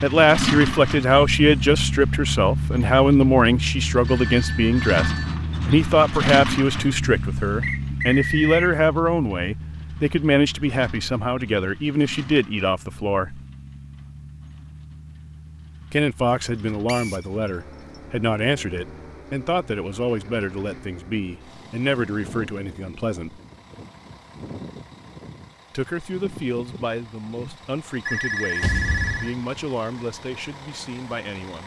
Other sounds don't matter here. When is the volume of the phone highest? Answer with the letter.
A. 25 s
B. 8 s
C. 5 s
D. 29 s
D.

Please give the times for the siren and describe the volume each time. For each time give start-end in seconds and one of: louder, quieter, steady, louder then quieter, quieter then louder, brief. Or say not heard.
not heard.